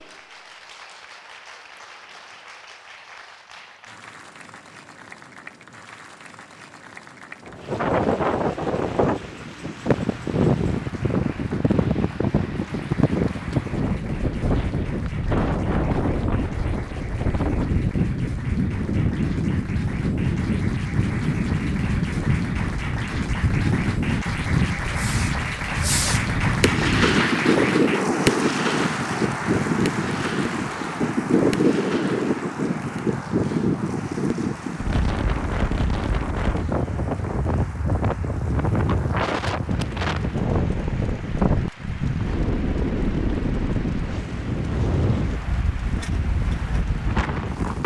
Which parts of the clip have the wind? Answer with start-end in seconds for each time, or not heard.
7.5-47.8.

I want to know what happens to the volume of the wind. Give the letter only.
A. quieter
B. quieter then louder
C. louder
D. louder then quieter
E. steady
E.